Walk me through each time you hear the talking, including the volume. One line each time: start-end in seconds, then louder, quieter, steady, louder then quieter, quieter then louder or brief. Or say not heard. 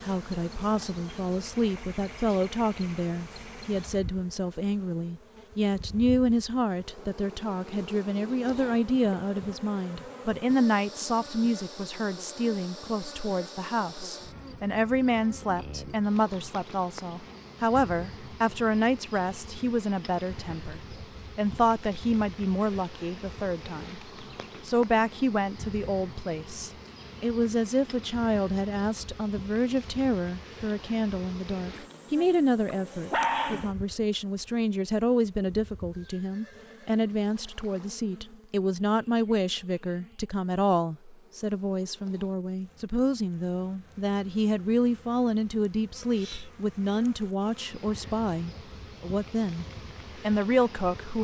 0.0-51.1 steady.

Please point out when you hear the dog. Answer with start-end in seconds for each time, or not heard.
32.8-33.8.